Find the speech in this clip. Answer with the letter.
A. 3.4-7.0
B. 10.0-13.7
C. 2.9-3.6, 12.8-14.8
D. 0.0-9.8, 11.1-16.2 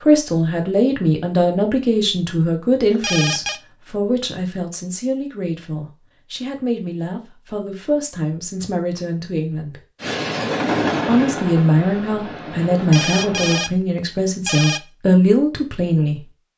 D.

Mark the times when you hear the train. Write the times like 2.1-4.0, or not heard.
10.0-13.7.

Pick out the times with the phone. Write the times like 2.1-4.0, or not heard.
2.9-3.6, 12.8-14.8.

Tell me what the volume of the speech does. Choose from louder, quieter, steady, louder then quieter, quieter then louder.
quieter then louder.